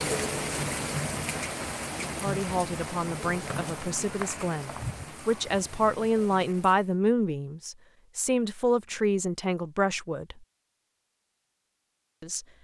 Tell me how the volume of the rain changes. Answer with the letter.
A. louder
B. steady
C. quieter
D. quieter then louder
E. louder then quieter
C.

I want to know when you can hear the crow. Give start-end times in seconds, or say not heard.
not heard.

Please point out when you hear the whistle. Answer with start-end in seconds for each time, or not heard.
3.5-5.0.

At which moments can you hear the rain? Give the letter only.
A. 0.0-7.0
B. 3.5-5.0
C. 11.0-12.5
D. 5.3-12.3
A.